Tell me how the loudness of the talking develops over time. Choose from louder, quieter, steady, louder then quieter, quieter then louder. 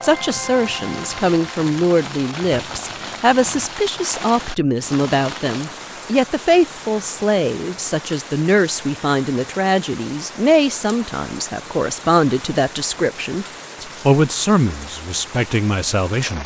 steady.